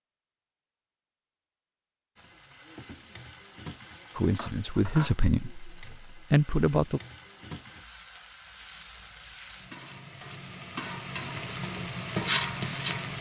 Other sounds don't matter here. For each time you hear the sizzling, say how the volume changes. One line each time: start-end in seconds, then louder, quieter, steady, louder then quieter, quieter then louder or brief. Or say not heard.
2.1-13.1 louder.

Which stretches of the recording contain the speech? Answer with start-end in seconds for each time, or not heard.
4.2-7.0.